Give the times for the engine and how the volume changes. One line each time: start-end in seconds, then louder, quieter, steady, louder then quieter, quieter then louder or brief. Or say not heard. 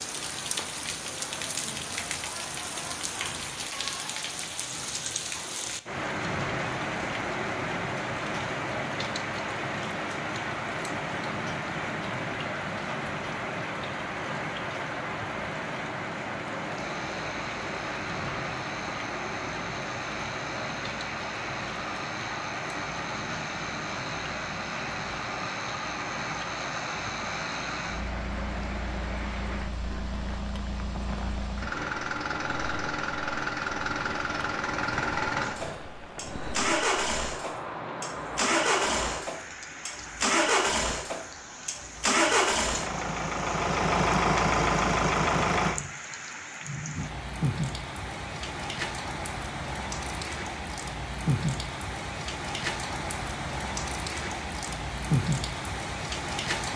16.8-45.8 louder.